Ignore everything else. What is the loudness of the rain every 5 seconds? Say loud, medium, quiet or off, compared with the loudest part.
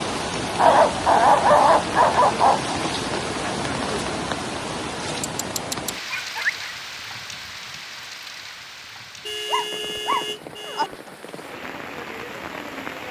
loud, medium, medium.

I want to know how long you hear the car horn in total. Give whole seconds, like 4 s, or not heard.
2 s.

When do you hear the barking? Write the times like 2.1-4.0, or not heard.
0.6-2.8, 5.3-6.7, 9.4-10.9.